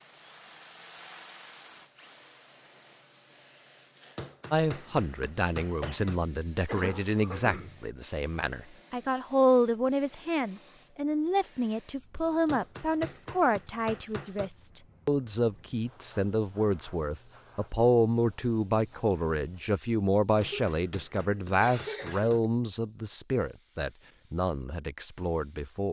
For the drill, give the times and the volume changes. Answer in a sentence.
You can hear the drill from 0.0 to 4.2 s, getting quieter.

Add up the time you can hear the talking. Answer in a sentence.
You can hear the talking for 21 seconds altogether.